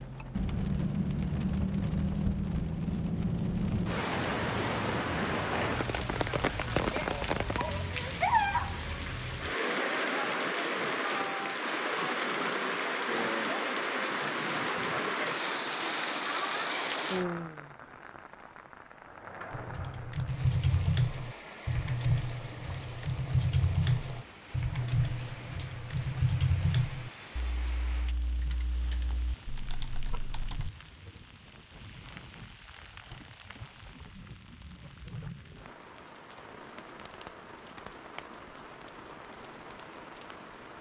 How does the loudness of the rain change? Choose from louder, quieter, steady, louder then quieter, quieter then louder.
quieter.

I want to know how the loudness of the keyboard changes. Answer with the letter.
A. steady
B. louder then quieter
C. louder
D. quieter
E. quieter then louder
D.